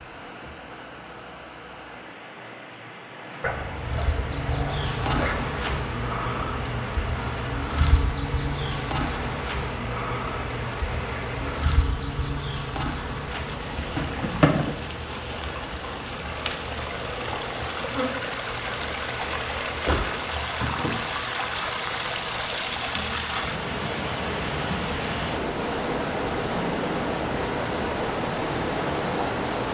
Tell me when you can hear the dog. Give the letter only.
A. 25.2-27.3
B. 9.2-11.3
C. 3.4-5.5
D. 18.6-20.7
C.